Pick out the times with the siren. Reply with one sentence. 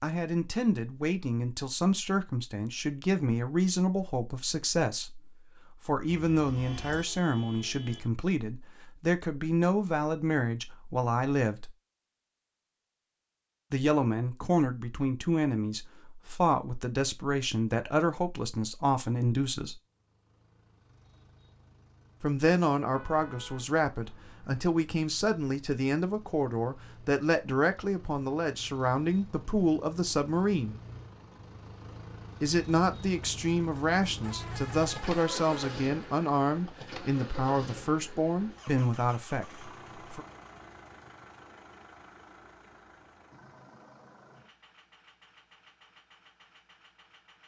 You can't hear the siren here.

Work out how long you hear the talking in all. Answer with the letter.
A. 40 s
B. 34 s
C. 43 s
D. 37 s
B.